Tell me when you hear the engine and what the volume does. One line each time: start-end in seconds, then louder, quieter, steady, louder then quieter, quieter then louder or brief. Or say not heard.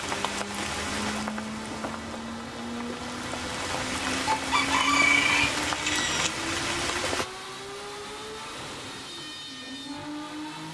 0.0-10.6 steady.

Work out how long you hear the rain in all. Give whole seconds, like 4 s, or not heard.
7 s.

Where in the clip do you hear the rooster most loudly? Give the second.
5 s.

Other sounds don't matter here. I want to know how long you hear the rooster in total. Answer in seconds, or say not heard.
2 s.